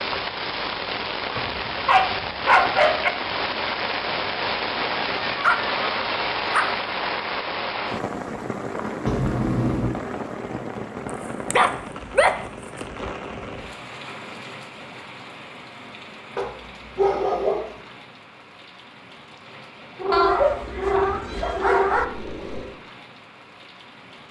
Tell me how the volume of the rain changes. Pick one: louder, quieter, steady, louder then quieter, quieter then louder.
quieter.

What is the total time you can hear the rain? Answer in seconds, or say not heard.
24 s.